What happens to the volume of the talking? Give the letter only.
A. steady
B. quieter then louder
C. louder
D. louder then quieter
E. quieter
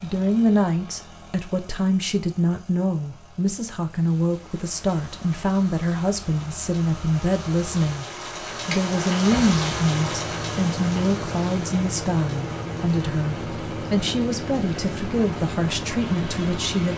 A.